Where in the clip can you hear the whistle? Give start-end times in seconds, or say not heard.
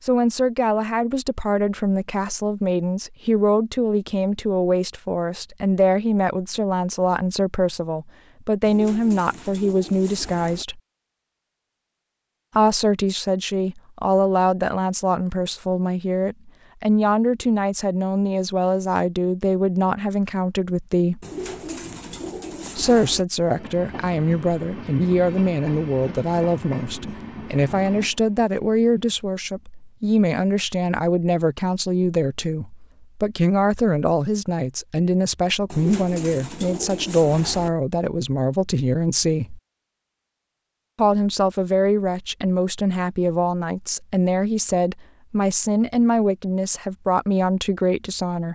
not heard.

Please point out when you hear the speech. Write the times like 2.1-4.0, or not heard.
0.0-10.8, 12.6-21.2, 22.8-39.6, 41.0-48.4.